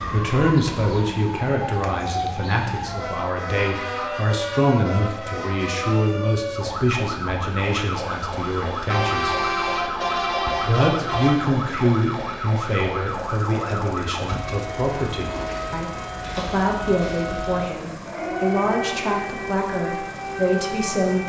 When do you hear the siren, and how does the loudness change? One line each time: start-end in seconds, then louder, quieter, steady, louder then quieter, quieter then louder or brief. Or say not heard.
0.0-21.2 steady.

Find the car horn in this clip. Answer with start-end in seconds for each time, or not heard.
3.5-4.7, 8.9-11.3, 14.2-14.7.